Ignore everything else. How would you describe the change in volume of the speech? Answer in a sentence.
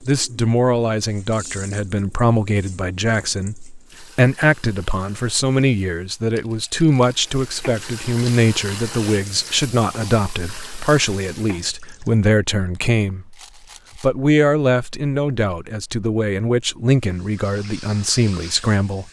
The loudness of the speech stays about the same.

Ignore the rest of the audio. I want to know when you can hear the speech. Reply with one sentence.
You can hear the speech from 0.0 to 13.3 s and from 13.9 to 19.0 s.